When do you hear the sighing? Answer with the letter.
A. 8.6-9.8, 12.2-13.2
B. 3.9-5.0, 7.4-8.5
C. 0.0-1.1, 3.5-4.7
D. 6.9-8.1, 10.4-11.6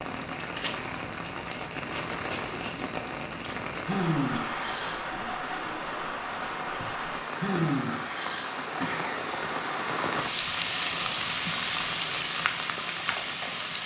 B.